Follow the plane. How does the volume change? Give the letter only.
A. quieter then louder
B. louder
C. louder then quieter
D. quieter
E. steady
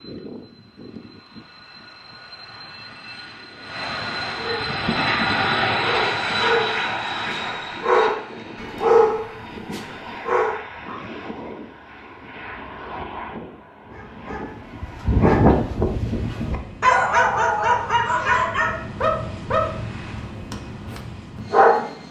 C.